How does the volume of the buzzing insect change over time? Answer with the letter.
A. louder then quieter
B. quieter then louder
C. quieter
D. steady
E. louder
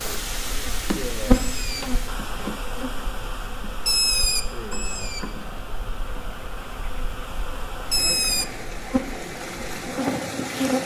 B.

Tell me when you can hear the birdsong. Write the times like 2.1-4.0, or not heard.
0.1-8.5.